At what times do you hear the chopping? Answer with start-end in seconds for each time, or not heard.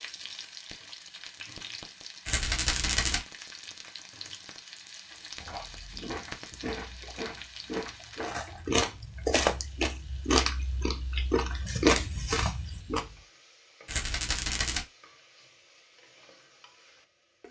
not heard.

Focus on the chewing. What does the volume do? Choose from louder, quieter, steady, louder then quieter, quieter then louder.
louder.